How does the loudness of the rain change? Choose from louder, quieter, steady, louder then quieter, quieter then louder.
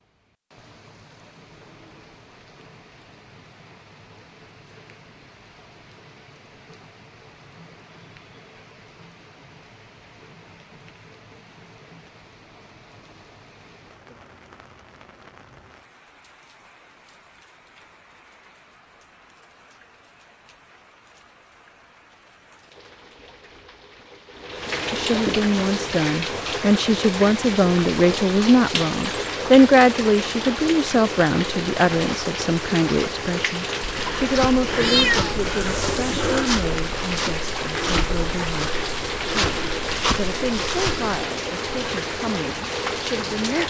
louder.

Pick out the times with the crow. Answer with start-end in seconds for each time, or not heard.
not heard.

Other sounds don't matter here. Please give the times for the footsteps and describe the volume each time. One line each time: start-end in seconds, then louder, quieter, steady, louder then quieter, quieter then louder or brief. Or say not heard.
33.8-41.1 steady.